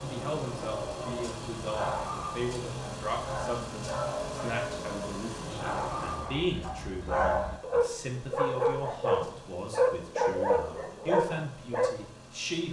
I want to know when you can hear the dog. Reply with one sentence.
You can hear the dog from 0.8 to 11.9 s.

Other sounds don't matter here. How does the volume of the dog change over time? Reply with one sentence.
The loudness of the dog goes up.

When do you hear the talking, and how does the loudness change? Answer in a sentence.
The talking can be heard from 0.0 to 12.6 s, at a steady volume.